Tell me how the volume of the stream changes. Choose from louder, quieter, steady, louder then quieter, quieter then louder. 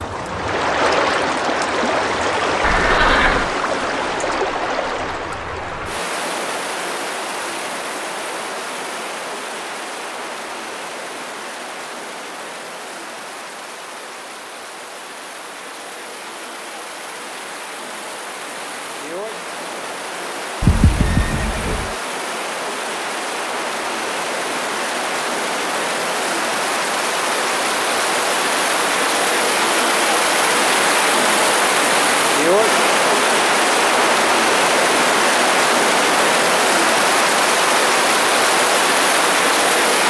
quieter then louder.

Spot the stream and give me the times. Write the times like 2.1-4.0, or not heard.
0.0-40.0.